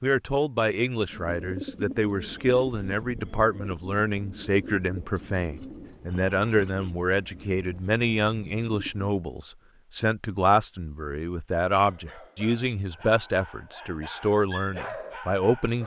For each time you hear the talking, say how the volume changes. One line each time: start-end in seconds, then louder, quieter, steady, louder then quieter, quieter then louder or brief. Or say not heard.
0.0-15.8 steady.